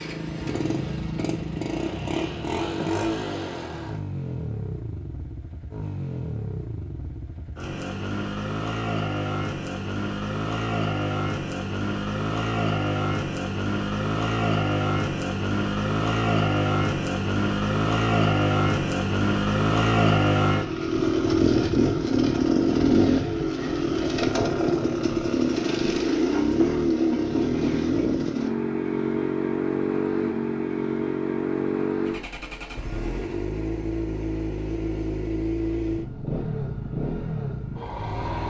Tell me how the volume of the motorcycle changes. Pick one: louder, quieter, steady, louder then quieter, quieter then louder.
louder then quieter.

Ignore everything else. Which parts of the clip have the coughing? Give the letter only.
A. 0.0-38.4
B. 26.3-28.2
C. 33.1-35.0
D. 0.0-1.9
B.